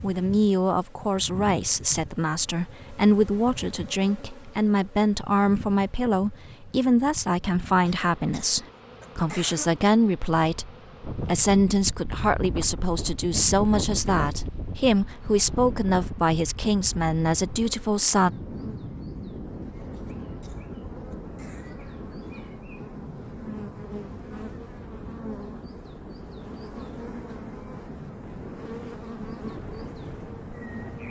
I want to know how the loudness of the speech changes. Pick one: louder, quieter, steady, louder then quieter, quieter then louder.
steady.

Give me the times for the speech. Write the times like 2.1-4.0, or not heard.
0.0-18.3.